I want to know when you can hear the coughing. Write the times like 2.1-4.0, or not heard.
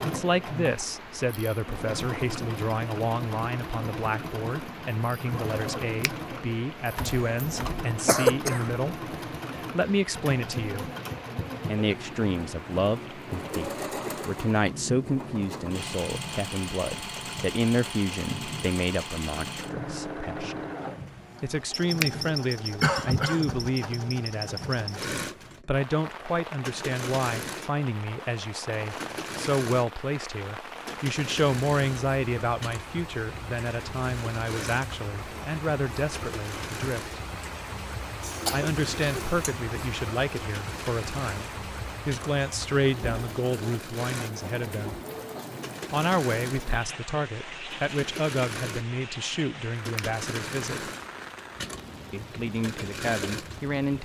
7.0-8.8, 22.8-23.6, 38.2-39.5.